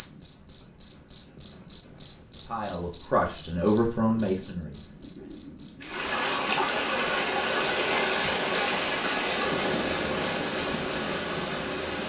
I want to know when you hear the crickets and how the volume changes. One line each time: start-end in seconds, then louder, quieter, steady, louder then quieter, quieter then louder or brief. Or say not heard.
0.0-12.0 quieter.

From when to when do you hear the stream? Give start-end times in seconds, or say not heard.
5.8-12.0.